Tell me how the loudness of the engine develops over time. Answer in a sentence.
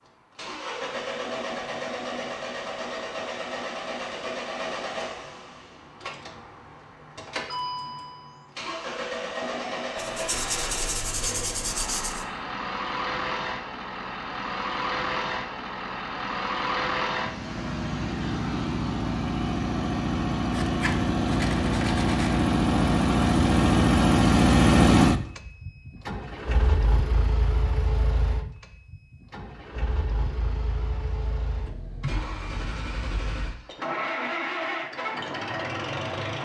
The loudness of the engine goes up, then down.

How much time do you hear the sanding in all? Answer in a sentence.
The sanding can be heard for 4 seconds in total.